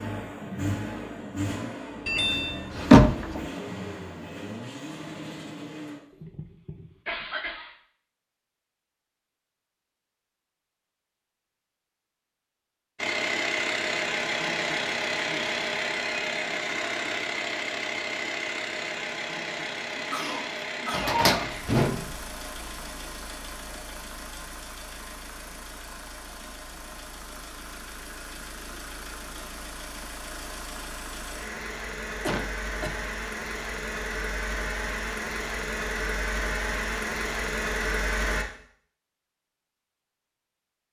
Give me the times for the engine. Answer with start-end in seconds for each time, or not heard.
0.0-6.2, 12.9-38.5.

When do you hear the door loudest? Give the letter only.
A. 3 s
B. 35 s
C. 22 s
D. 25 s
A.